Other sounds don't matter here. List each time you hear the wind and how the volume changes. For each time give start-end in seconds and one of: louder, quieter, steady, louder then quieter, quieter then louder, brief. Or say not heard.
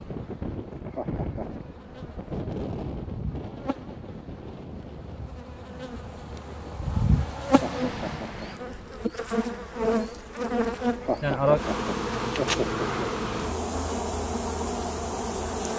0.0-8.6 quieter then louder.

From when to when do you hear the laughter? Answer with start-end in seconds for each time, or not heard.
0.7-1.6, 7.5-8.4, 10.8-13.2.